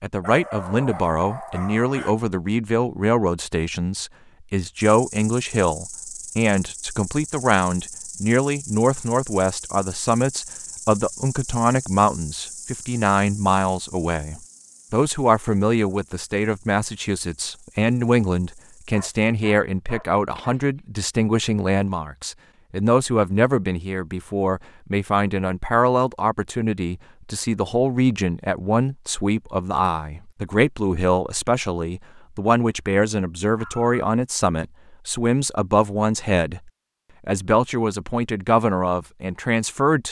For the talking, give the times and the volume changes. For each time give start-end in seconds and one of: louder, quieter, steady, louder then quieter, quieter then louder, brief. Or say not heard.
0.0-40.0 steady.